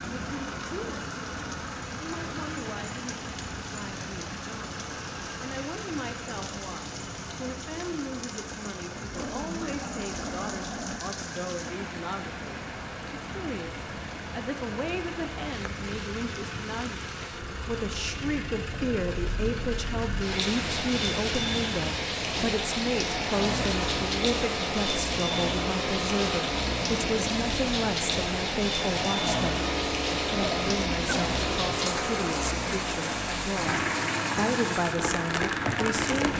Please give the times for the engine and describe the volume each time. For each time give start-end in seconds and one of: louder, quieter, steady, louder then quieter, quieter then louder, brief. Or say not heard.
0.0-36.3 louder.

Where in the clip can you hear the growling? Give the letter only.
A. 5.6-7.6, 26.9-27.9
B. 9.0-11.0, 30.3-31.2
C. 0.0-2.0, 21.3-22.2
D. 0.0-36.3
B.